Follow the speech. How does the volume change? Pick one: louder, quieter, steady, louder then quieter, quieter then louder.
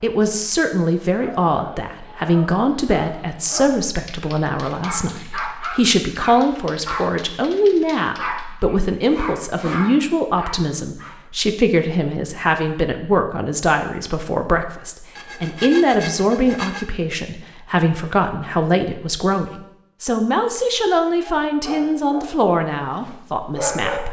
steady.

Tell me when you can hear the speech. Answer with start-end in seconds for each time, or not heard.
0.0-24.0.